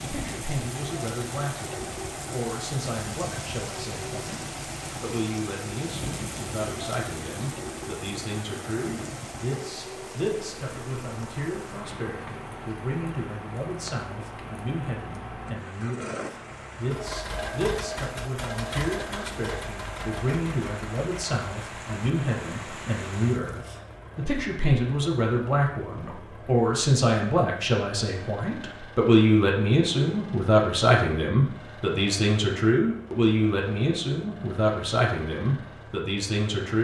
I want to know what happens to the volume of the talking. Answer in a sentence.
The volume of the talking goes up.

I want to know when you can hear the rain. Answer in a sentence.
You can hear the rain from 0.0 to 23.6 s.